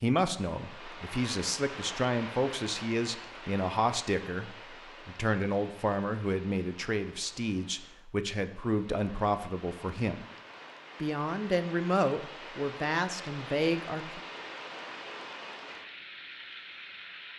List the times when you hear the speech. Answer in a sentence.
The speech can be heard from 0.0 to 10.2 s and from 11.0 to 14.2 s.